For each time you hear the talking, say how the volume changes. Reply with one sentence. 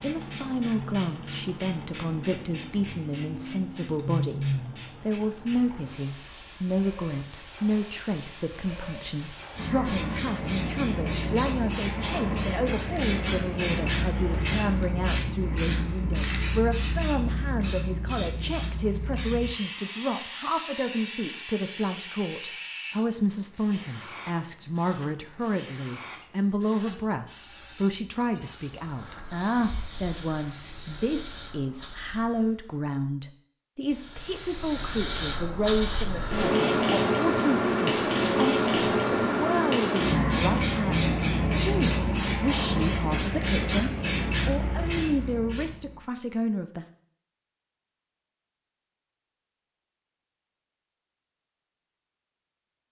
The talking can be heard from 0.0 to 46.9 s, at a steady volume.